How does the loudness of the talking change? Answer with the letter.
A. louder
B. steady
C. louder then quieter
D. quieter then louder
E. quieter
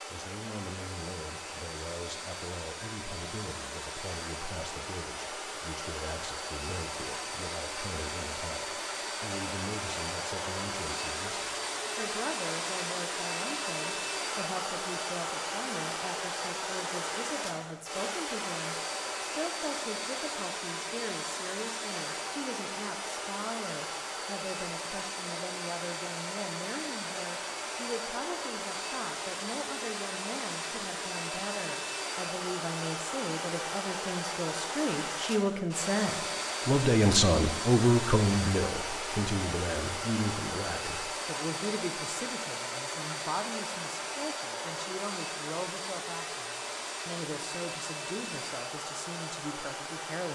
C.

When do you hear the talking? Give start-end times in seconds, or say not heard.
0.1-50.3.